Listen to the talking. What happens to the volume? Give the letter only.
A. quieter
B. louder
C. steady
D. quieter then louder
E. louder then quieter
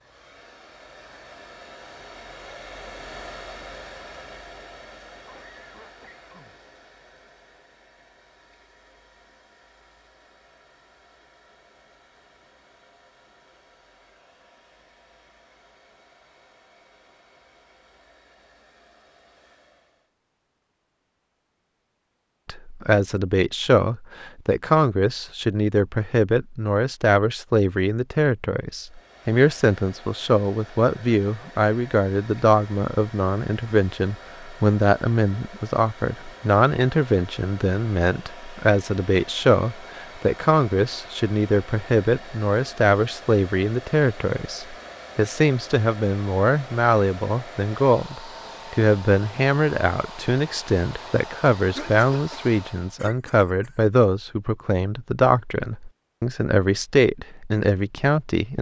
C.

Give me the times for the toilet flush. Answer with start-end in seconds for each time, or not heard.
not heard.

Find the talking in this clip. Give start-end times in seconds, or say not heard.
22.4-58.5.